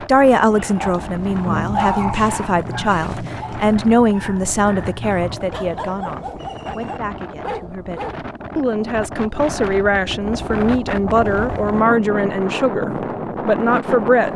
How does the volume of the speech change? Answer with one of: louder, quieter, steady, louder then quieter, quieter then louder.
quieter then louder.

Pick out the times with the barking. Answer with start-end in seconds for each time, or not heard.
0.5-8.2.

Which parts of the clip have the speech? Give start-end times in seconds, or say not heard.
0.0-14.3.